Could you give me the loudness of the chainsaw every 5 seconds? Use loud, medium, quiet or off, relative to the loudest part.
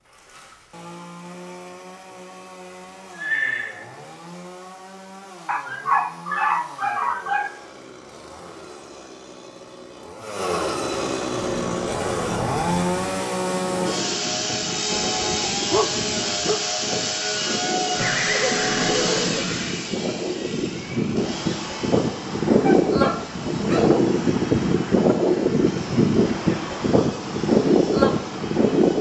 quiet, quiet, loud, loud, quiet, quiet.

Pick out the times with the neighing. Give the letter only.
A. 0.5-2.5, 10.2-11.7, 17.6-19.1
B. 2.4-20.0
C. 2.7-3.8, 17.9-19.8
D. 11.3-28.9
C.